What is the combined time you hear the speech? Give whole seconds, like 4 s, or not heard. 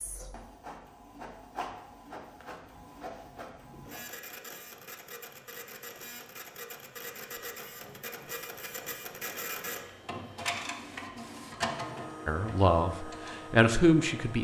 2 s.